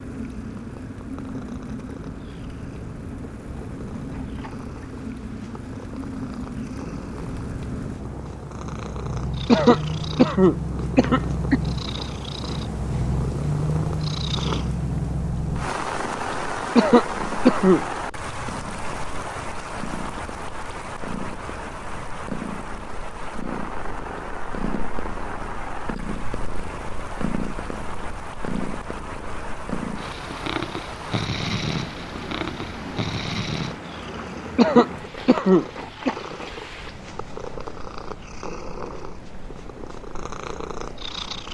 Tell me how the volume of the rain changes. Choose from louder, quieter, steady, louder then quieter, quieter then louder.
louder then quieter.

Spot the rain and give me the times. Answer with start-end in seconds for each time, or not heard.
0.0-41.4.